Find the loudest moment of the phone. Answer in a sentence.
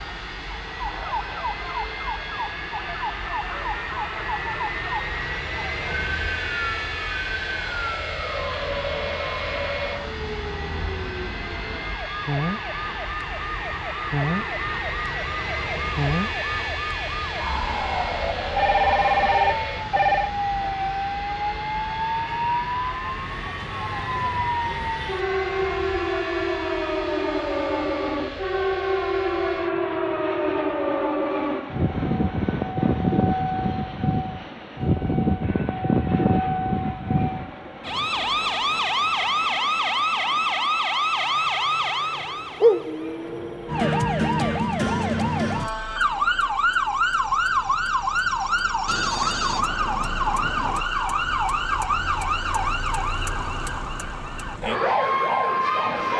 The loudest moment of the phone is at 19 seconds.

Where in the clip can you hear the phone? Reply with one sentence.
The phone can be heard from 18.6 to 20.3 s and from 48.9 to 50.9 s.